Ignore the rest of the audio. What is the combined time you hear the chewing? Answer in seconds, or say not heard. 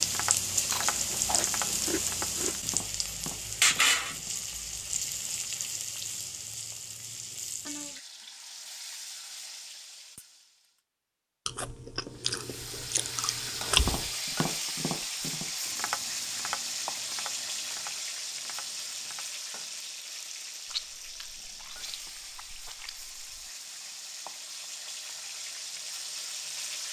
7 s.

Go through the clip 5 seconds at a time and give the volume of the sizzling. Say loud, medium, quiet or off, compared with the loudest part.
loud, medium, medium, medium, quiet, medium.